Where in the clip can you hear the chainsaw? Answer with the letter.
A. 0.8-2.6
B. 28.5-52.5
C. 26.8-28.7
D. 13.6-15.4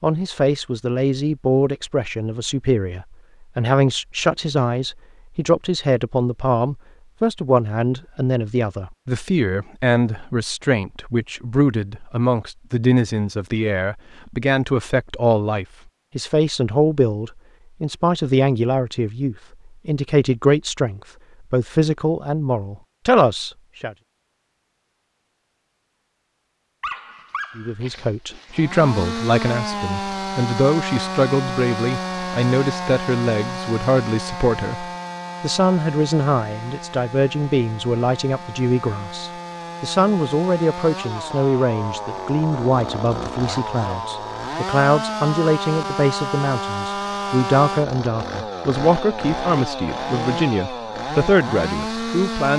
B.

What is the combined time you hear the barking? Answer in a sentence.
The barking can be heard for 2 seconds in total.